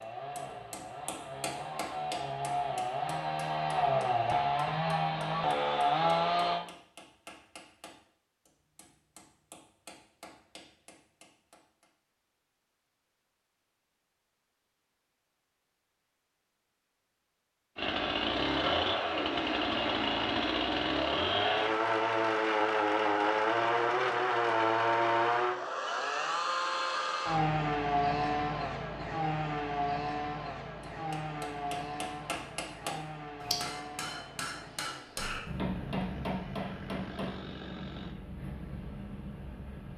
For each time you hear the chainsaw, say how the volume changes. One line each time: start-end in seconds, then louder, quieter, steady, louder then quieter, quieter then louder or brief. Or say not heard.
0.0-6.7 louder
17.8-38.1 quieter.